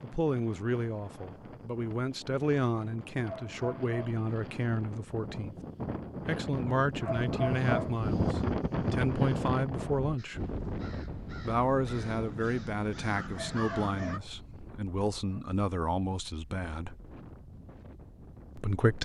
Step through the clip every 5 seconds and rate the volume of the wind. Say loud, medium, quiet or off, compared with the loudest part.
quiet, loud, medium, quiet.